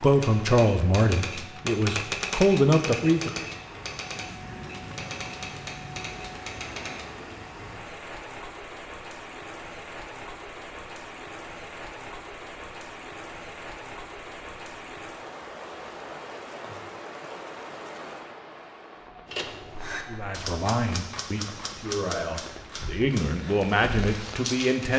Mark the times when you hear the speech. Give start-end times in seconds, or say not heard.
0.0-3.5, 20.1-24.9.